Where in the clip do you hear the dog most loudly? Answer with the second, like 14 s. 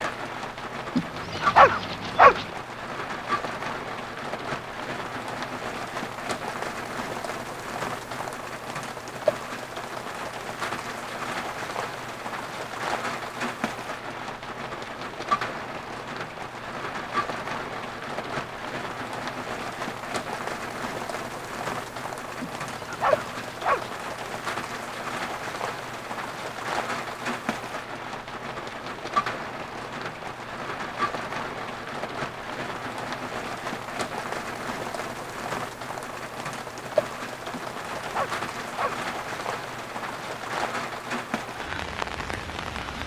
2 s.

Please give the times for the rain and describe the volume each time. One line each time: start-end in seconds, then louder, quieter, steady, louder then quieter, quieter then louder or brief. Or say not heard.
0.0-43.0 steady.